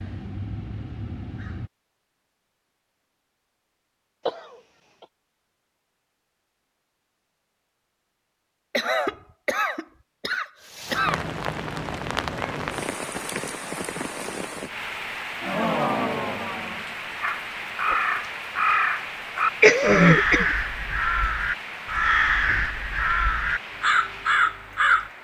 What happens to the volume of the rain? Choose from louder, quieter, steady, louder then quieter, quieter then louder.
quieter.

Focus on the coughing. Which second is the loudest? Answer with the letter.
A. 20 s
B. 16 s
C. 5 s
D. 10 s
A.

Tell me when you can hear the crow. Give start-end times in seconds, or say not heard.
0.0-1.7, 17.2-25.1.